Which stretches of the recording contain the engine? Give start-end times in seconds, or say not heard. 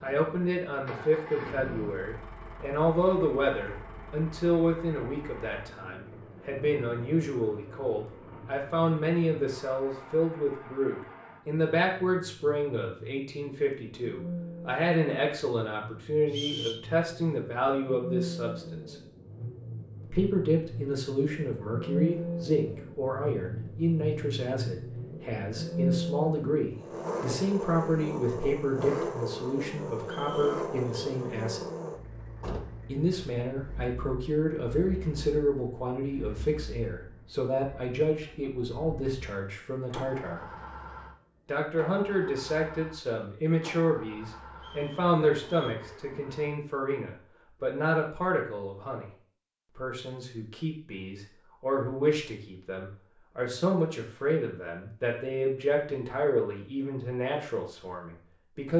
0.0-46.5.